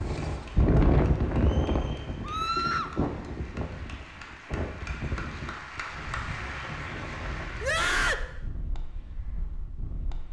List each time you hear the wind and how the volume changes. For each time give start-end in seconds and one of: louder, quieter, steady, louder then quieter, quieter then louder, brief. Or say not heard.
0.0-10.2 quieter.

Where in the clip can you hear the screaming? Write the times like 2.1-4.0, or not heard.
2.2-2.9, 7.6-8.2.